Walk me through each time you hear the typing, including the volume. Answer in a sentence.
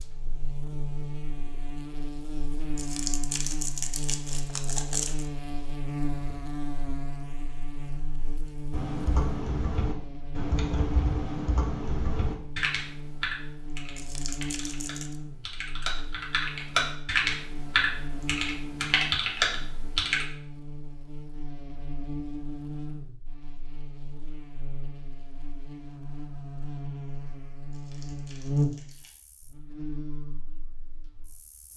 You can hear the typing from 8.7 to 20.2 s, getting quieter then louder.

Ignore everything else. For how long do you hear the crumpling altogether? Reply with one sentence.
The crumpling can be heard for 5 seconds in total.